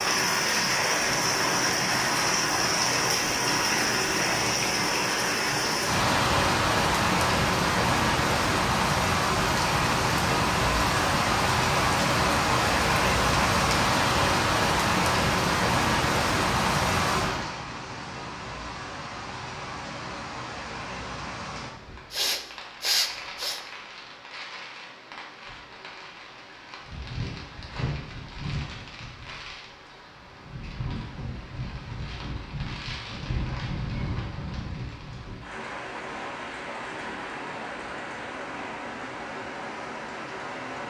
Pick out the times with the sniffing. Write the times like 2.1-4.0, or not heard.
22.1-23.6.